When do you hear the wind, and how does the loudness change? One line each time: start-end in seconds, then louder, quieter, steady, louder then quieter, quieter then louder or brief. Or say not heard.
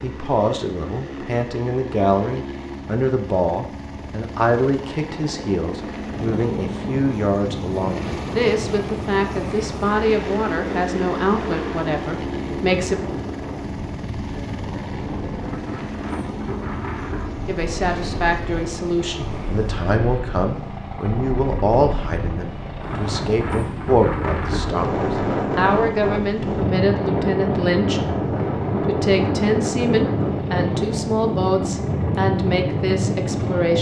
6.0-33.7 louder.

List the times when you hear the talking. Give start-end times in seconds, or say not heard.
0.0-13.0, 17.4-28.2, 28.8-33.7.